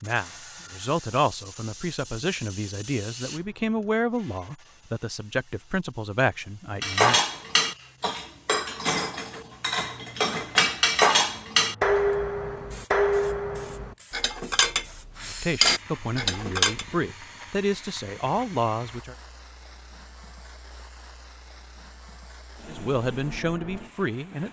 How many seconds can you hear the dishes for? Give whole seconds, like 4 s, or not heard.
10 s.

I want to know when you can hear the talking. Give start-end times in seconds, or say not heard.
0.0-7.2, 15.2-19.1, 22.6-24.4.